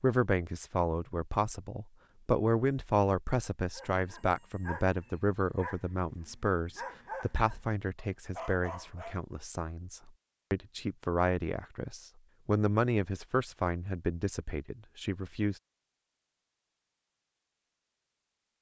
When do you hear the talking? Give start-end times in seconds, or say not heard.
0.0-15.6.